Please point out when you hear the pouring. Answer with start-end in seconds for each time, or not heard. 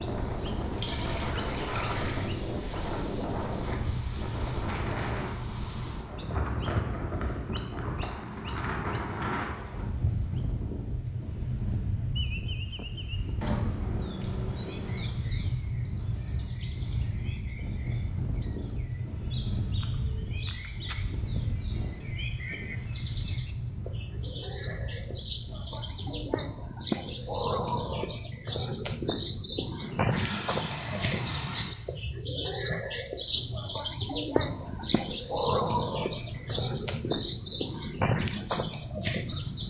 0.7-2.3, 13.4-15.2, 29.8-31.6.